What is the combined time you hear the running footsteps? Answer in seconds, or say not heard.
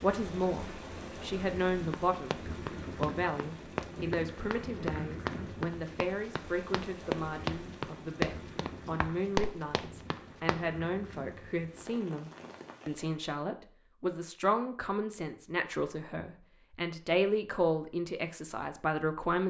9 s.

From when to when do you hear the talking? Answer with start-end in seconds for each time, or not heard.
0.0-19.4.